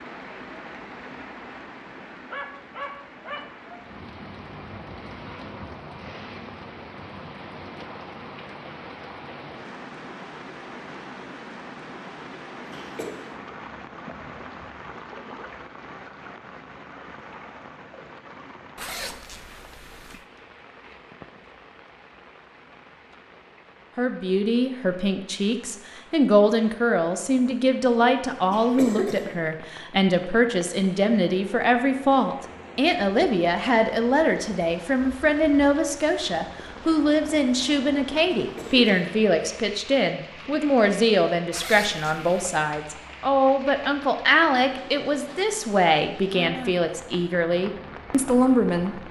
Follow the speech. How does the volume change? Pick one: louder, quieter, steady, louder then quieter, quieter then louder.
steady.